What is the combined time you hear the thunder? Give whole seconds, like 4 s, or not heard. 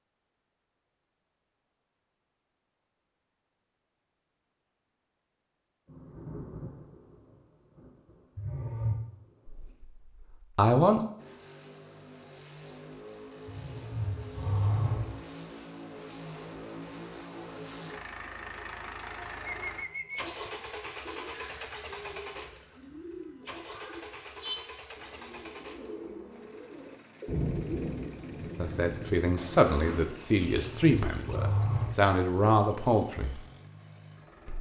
7 s.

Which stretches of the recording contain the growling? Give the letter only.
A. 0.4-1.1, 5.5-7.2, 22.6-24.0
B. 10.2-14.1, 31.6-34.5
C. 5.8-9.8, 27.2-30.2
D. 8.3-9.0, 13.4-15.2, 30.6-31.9
D.